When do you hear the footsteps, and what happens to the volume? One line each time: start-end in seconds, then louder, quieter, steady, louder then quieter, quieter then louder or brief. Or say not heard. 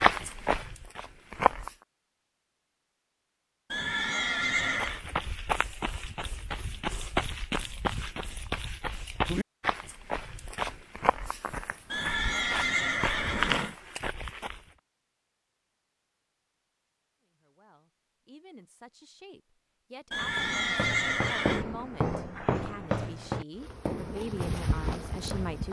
0.0-1.7 brief
4.6-14.6 steady
20.4-25.6 quieter.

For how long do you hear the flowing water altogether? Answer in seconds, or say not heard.
not heard.